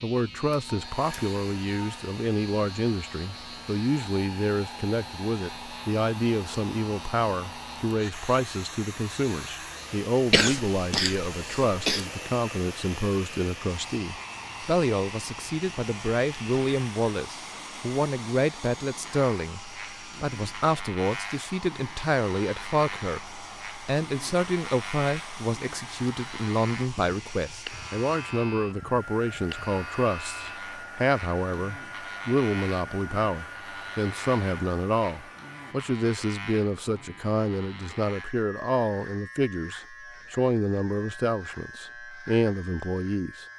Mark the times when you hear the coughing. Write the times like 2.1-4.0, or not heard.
10.3-12.1.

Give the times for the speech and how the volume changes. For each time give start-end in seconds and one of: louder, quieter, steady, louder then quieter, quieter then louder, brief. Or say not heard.
0.0-43.5 steady.